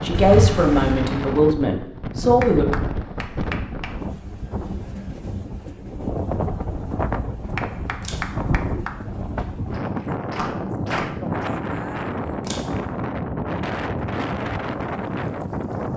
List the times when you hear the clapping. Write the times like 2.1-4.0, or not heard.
2.4-4.0, 7.5-11.5.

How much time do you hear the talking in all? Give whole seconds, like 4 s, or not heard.
3 s.